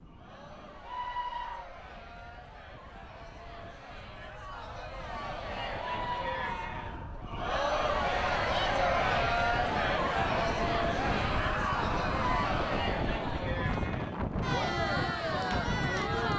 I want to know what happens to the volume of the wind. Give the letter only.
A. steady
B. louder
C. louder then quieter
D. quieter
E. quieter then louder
B.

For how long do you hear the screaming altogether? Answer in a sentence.
The screaming can be heard for 4 seconds in total.